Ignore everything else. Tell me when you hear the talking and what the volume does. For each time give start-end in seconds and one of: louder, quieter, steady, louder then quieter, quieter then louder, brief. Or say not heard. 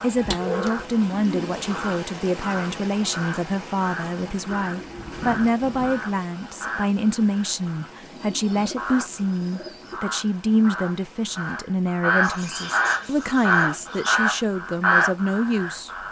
0.0-15.9 steady.